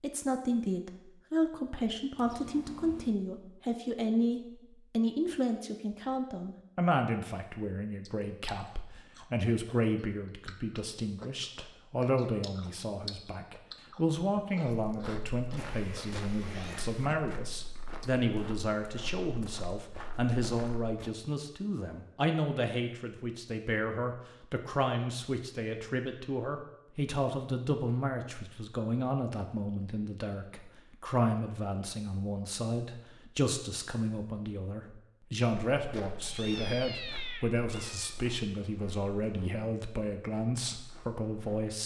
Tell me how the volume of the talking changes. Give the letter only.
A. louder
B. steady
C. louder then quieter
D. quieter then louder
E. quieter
B.